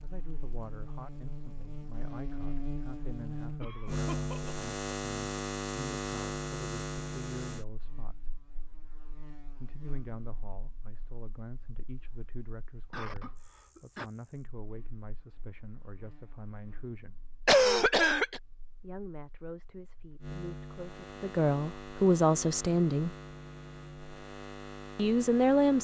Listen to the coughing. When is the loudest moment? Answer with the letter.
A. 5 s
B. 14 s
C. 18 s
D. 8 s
C.